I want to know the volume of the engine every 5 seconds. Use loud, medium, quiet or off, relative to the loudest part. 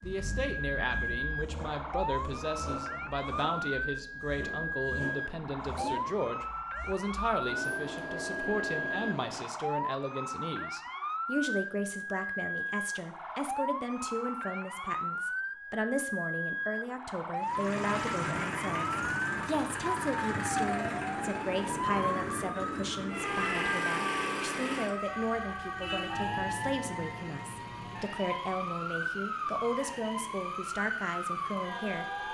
medium, medium, off, loud, loud, quiet, quiet.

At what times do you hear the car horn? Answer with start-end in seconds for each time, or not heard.
25.8-26.4.